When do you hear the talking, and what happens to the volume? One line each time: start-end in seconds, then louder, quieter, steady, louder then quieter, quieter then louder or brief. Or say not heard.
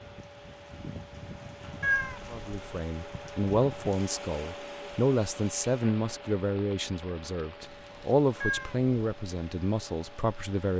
2.3-10.7 steady.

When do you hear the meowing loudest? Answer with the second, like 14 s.
2 s.